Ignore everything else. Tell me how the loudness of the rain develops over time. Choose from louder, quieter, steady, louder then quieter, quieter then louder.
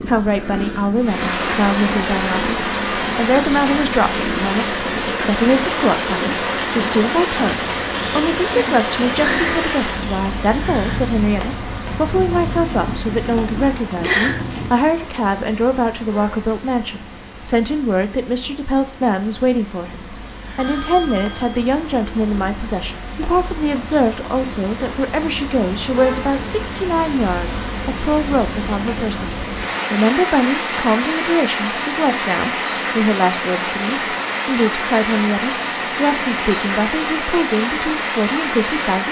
quieter then louder.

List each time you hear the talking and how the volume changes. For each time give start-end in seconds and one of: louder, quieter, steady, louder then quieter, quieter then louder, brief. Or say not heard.
0.0-39.0 steady.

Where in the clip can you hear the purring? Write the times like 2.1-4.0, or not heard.
0.0-14.7.